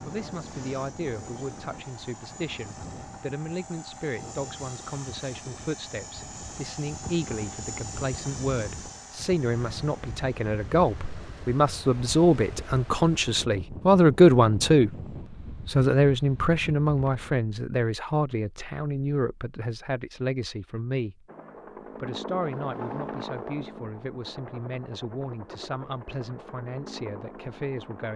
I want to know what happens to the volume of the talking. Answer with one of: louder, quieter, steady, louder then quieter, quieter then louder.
louder then quieter.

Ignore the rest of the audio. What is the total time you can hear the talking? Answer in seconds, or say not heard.
27 s.